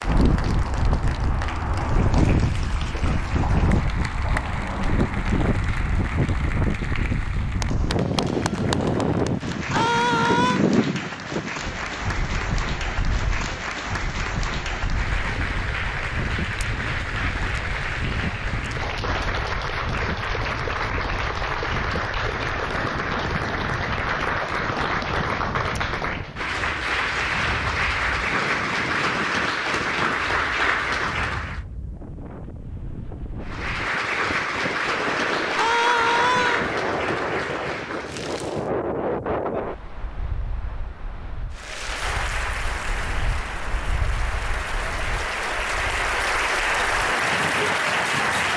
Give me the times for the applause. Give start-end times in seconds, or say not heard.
0.0-31.6, 33.4-38.7, 41.5-48.5.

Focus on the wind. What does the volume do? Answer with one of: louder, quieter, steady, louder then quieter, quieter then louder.
quieter.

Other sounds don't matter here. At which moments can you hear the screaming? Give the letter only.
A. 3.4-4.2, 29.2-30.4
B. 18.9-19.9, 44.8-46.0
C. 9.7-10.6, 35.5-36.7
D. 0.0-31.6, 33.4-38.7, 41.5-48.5
C.